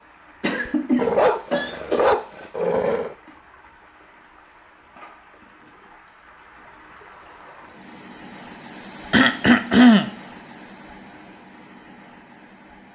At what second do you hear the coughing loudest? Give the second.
10 s.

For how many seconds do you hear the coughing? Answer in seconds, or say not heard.
3 s.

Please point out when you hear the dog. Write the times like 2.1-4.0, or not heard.
0.7-3.1.